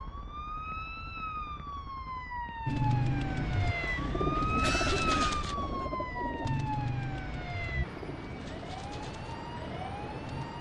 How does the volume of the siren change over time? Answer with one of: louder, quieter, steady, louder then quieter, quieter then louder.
louder then quieter.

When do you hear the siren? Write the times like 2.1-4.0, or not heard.
0.0-10.5.